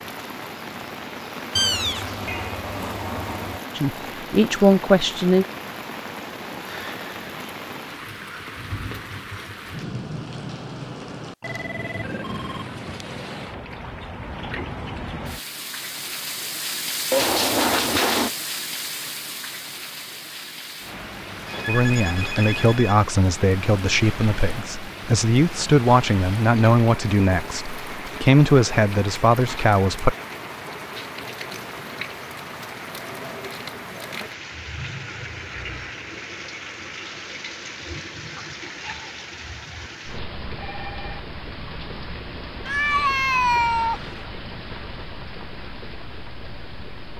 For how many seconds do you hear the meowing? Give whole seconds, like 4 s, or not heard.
5 s.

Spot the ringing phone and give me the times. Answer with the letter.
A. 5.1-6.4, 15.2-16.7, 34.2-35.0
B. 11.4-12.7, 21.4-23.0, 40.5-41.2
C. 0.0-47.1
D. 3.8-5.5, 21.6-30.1
B.